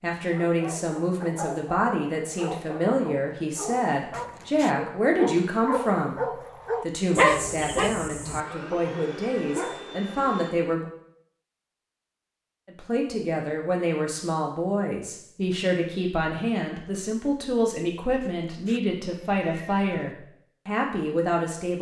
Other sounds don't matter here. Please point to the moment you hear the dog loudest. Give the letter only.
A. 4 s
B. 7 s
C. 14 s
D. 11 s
B.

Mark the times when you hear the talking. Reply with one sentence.
You can hear the talking from 0.0 to 6.2 s, from 6.8 to 10.8 s and from 12.7 to 21.7 s.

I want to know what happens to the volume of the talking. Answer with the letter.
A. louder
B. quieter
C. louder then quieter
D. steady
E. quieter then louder
D.